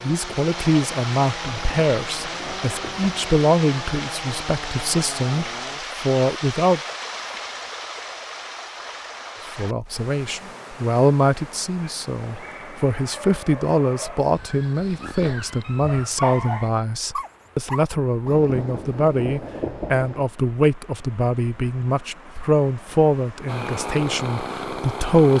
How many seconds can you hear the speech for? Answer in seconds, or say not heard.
23 s.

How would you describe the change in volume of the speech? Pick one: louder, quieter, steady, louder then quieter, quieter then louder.
steady.